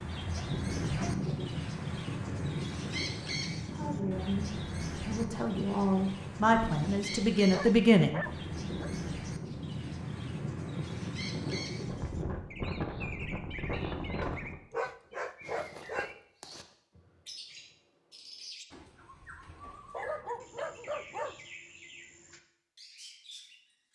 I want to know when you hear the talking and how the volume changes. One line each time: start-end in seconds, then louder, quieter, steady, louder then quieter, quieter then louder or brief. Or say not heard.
3.6-8.2 louder.